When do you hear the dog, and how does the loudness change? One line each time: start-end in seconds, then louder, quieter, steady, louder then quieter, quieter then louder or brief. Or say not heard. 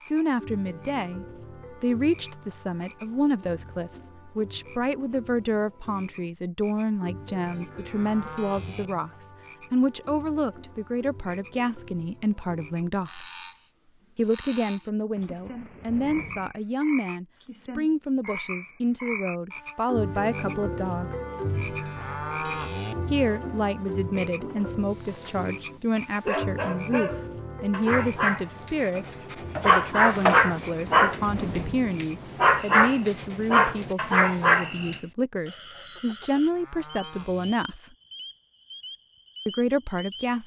24.6-35.0 louder.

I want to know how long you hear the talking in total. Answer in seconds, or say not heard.
36 s.